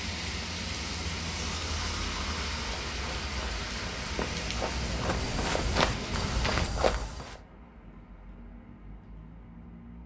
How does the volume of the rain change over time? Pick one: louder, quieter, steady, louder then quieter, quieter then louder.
quieter.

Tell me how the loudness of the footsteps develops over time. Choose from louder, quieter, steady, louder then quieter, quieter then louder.
louder.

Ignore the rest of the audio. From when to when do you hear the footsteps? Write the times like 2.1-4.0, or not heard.
2.5-7.4.